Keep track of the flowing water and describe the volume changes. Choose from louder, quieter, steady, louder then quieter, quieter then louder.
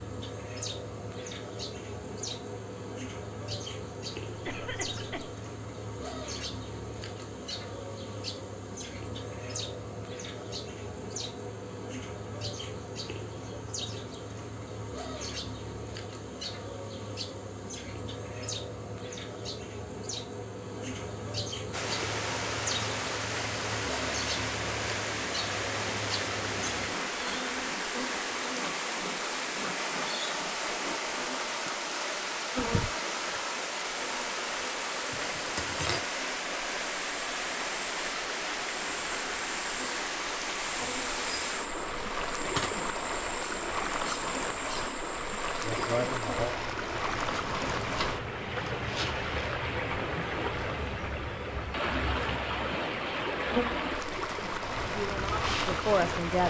steady.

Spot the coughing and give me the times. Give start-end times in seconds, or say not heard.
4.3-5.3.